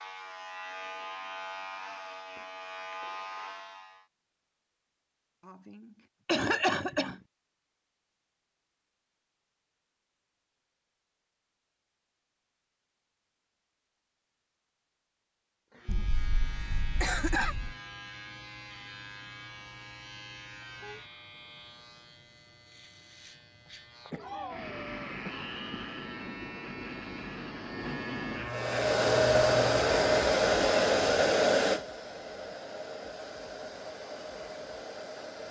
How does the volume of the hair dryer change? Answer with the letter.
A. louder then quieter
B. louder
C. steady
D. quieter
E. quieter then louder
D.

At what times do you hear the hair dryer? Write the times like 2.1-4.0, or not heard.
28.4-35.4.